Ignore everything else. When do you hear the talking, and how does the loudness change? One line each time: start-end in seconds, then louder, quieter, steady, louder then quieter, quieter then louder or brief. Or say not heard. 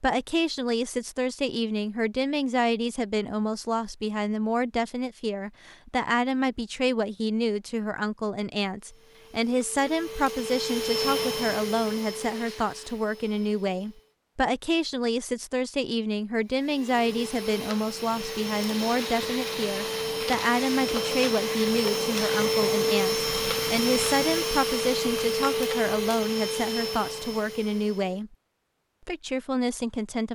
0.0-28.3 steady
29.1-30.2 brief.